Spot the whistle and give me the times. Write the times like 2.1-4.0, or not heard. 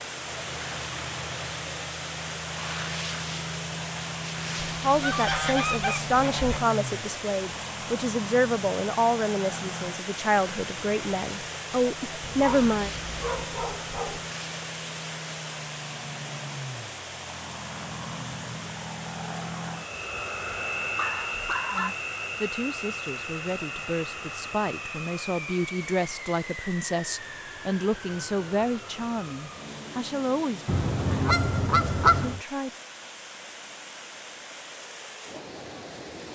not heard.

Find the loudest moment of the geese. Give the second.
32 s.